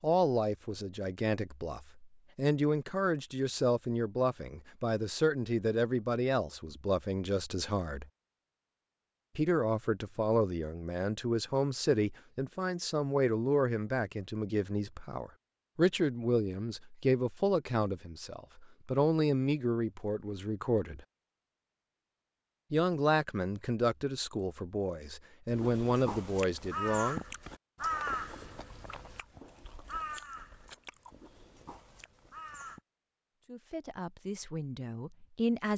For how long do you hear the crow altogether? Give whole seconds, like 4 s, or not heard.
7 s.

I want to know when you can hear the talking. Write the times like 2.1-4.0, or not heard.
0.0-8.1, 9.3-21.0, 22.7-27.2, 33.5-35.7.